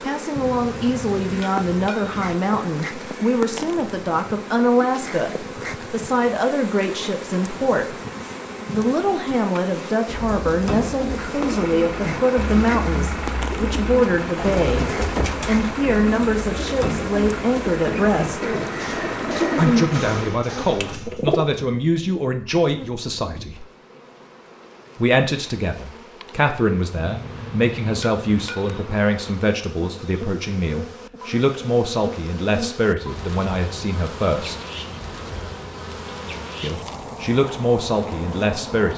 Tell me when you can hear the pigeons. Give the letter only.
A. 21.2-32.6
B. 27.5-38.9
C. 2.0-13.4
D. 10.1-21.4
D.